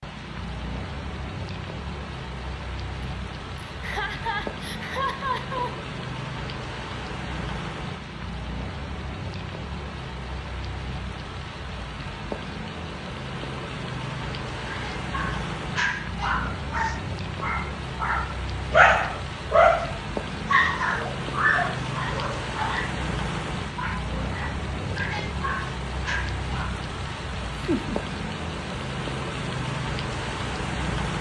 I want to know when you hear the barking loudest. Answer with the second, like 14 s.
19 s.